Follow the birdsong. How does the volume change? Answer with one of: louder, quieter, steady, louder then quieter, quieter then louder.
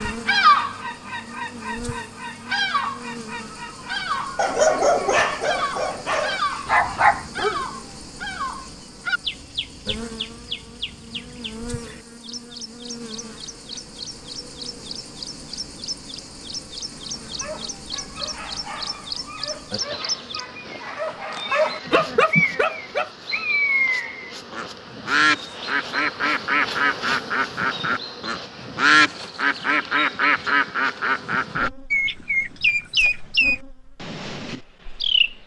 quieter then louder.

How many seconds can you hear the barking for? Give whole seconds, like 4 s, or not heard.
9 s.